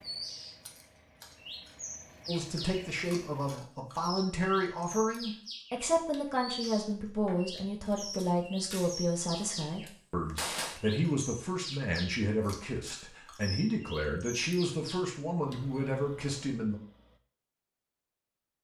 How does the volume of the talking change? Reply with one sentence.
The loudness of the talking stays about the same.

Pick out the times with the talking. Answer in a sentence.
You can hear the talking from 2.2 to 16.8 s.